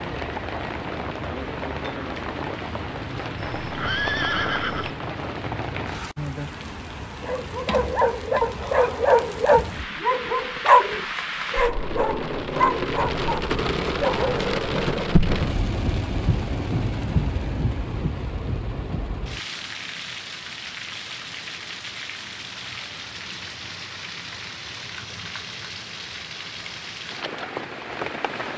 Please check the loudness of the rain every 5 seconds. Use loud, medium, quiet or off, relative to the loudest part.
loud, medium, loud, loud, medium, medium.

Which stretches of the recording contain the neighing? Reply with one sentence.
You can hear the neighing from 3.4 to 5.0 s.